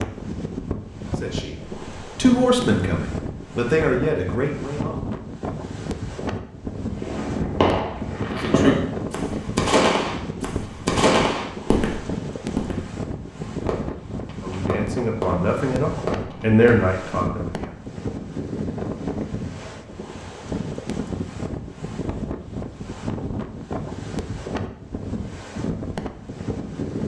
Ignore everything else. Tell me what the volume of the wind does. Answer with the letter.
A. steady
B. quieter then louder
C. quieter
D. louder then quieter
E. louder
A.